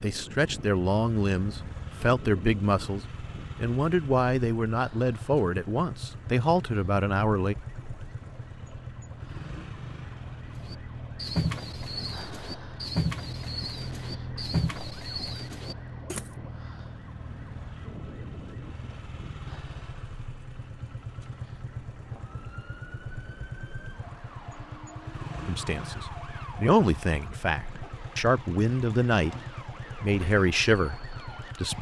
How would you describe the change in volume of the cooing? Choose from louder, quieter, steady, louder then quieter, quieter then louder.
quieter.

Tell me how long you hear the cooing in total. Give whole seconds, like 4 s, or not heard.
6 s.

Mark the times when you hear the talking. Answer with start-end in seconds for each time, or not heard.
0.0-7.5, 25.4-29.4, 30.0-31.7.